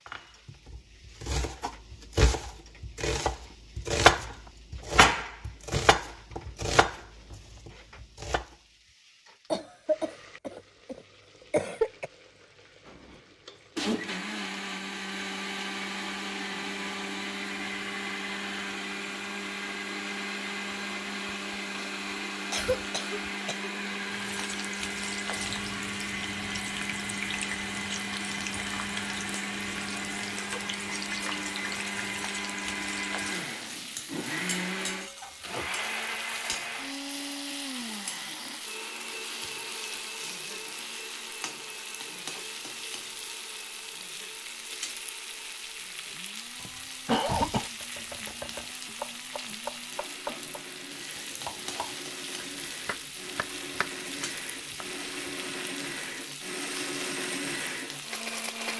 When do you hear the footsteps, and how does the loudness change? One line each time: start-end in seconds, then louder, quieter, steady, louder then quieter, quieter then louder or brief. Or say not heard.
not heard.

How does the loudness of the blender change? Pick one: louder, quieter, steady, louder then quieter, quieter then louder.
quieter then louder.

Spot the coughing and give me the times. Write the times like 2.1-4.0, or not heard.
9.5-12.1, 21.2-21.9, 22.5-23.7, 46.6-47.7.